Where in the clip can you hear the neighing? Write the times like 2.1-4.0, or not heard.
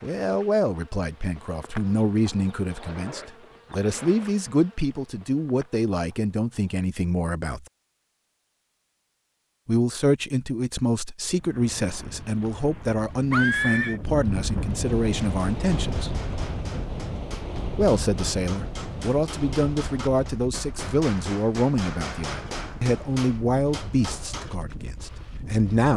13.3-14.0.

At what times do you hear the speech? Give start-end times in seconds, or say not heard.
0.0-7.7, 9.7-16.1, 17.8-25.9.